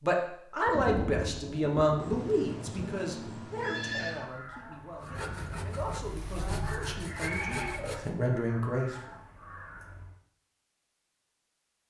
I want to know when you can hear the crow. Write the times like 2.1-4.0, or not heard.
4.1-10.2.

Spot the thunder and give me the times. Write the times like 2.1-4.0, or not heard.
0.7-3.4.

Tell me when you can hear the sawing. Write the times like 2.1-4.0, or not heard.
4.9-8.2.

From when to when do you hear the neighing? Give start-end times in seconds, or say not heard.
1.9-4.3, 7.2-7.8.